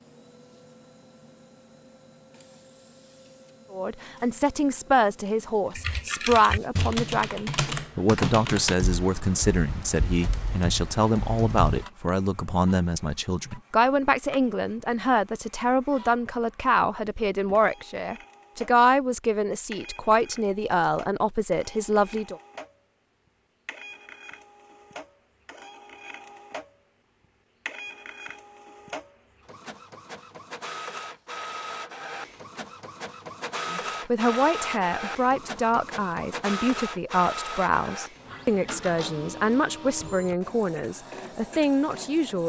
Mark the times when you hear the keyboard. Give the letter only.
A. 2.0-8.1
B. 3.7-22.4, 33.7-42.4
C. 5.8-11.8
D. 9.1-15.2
C.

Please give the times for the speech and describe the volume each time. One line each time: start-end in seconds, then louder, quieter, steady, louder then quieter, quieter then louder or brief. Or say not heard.
3.7-22.4 steady
33.7-42.4 steady.